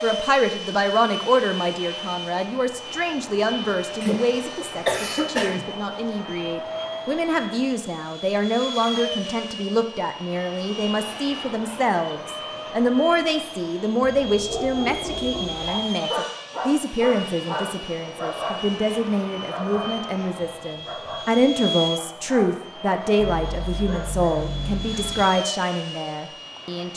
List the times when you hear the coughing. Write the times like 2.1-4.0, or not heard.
4.0-5.7.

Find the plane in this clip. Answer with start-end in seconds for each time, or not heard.
0.0-26.9.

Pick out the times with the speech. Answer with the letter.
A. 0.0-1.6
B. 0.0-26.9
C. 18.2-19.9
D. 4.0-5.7
B.